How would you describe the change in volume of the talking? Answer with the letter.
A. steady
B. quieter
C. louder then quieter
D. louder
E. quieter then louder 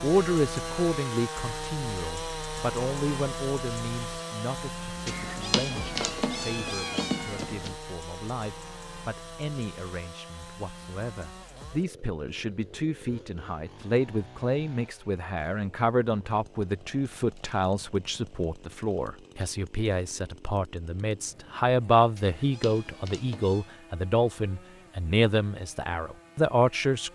E.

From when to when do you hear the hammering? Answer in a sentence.
You can't hear the hammering here.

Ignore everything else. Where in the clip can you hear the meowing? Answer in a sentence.
The meowing can be heard from 5.0 to 7.8 s and from 22.1 to 23.7 s.